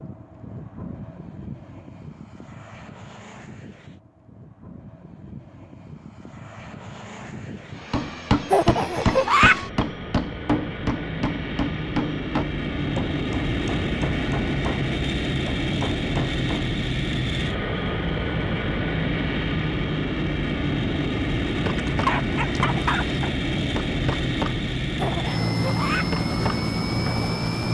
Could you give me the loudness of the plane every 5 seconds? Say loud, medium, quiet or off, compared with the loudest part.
quiet, quiet, loud, loud, loud, loud.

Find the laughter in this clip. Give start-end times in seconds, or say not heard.
8.5-9.6, 24.9-26.1.